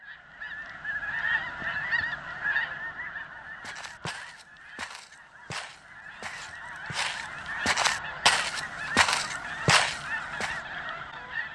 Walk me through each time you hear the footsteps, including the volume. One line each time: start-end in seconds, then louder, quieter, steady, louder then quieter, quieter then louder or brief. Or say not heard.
3.6-10.6 louder.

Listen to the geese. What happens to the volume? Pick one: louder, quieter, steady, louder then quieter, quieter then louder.
quieter then louder.